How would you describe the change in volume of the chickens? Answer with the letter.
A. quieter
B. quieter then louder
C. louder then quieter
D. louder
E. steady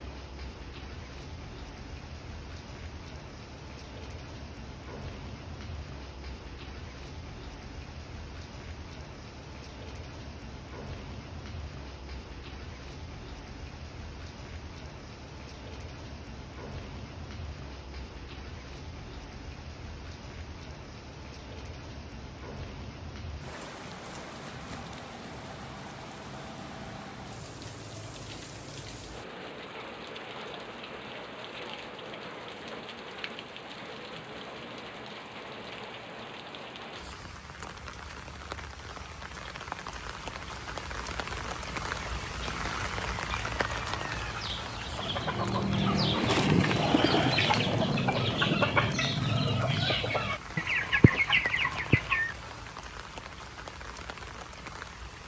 D.